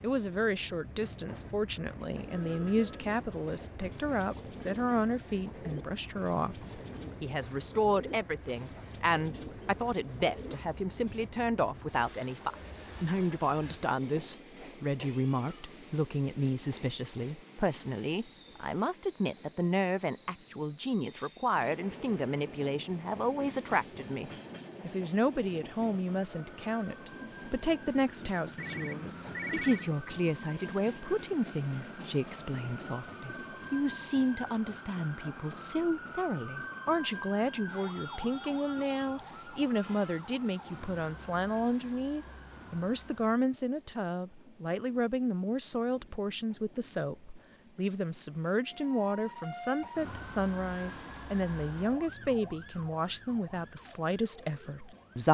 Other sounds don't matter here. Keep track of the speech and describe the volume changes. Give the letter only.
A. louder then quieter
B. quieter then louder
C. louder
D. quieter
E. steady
E.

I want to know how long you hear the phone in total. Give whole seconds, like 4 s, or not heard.
2 s.